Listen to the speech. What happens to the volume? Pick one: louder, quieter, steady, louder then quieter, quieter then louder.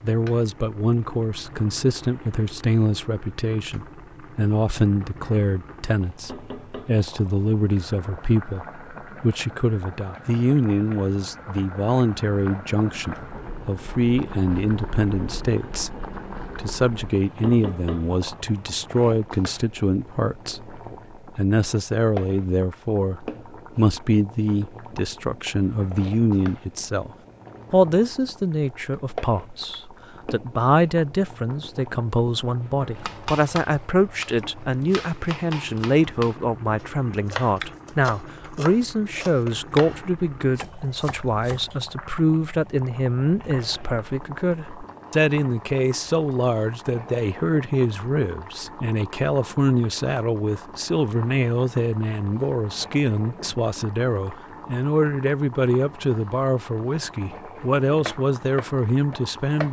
steady.